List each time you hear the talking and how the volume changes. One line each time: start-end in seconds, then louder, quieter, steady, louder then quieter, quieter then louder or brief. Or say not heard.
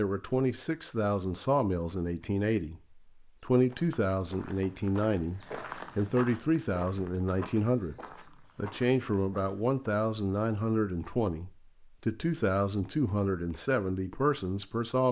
0.0-15.0 steady.